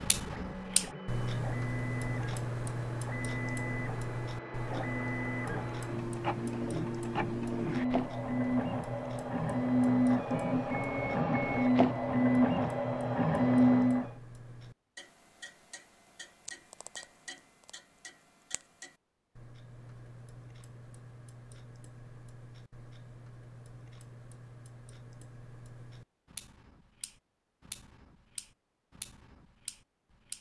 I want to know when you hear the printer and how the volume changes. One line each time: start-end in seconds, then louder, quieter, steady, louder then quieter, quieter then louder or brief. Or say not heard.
0.0-14.1 louder.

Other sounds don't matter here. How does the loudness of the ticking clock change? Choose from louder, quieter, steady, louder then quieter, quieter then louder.
quieter.